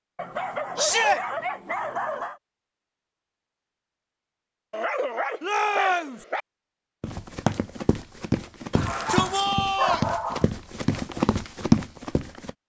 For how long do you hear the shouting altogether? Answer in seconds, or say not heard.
3 s.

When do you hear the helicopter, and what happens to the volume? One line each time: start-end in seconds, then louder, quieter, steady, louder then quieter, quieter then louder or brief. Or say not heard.
not heard.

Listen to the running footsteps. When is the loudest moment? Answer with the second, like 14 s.
12 s.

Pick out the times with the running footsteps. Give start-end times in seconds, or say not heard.
7.0-12.5.